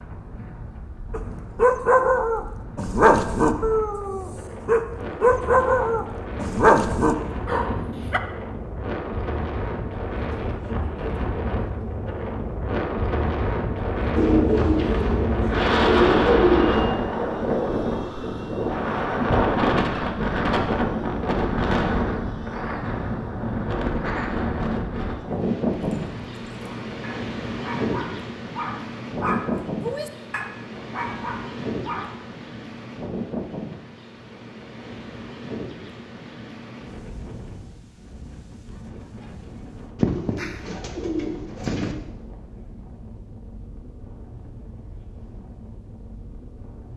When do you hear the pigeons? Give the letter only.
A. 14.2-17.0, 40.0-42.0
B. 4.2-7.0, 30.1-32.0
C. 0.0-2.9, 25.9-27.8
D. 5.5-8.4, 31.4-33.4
A.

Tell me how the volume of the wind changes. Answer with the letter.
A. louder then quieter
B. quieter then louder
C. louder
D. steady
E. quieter
A.